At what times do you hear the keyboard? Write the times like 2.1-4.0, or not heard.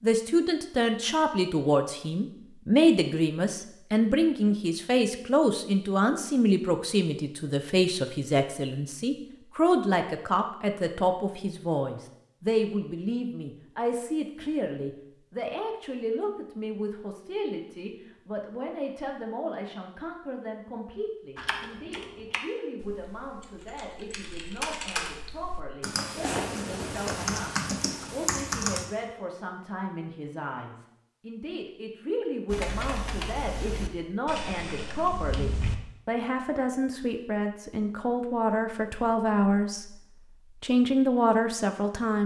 21.4-28.9, 32.5-35.8.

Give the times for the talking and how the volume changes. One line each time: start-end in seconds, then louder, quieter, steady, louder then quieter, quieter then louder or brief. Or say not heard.
0.0-40.0 quieter then louder
40.6-42.2 brief.